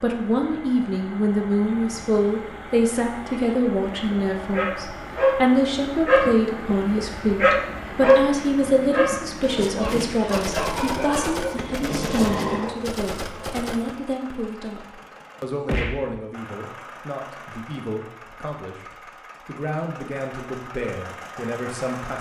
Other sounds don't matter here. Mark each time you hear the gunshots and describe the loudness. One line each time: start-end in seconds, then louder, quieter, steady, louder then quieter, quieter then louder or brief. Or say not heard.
9.4-13.9 steady.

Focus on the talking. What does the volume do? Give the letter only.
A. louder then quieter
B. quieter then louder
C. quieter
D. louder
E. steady
C.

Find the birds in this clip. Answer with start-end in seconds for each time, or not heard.
not heard.